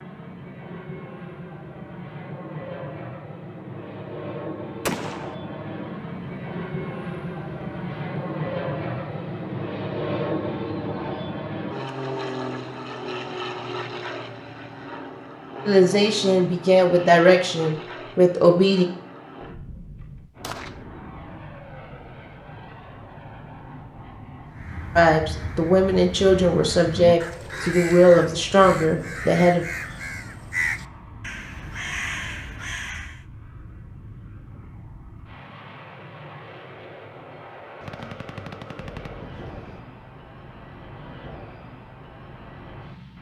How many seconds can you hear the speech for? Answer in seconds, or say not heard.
8 s.